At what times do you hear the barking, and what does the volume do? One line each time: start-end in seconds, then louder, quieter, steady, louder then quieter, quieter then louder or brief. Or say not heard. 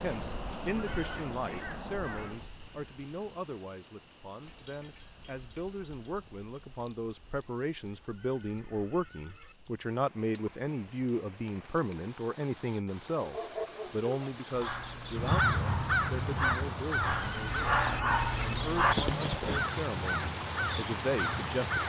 13.2-19.7 louder.